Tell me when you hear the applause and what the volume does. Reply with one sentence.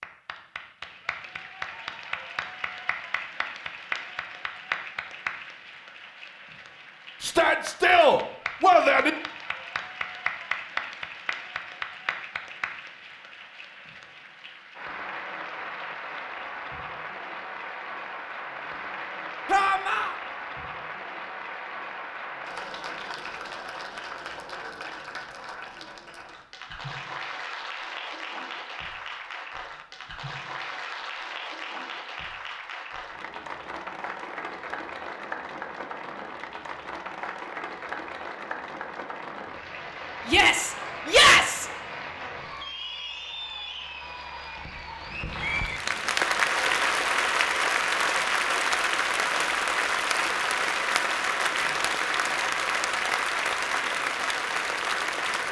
You can hear the applause from 0.0 to 55.4 s, getting louder.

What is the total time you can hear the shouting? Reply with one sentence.
You can hear the shouting for 4 seconds altogether.